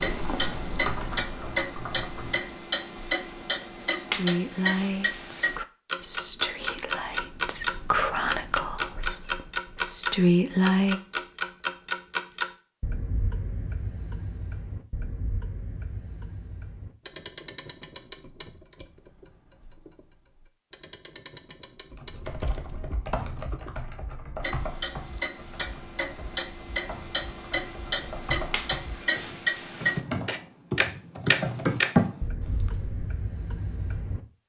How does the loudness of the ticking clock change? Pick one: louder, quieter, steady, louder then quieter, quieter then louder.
quieter then louder.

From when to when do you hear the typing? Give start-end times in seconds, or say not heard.
0.0-2.5, 21.9-33.1.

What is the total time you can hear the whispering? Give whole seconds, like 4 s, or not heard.
8 s.